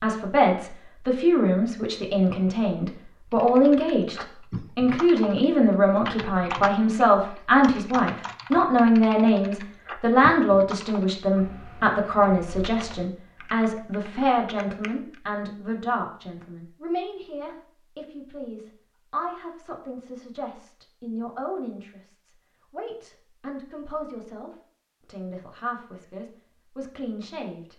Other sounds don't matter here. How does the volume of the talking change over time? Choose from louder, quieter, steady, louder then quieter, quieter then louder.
quieter.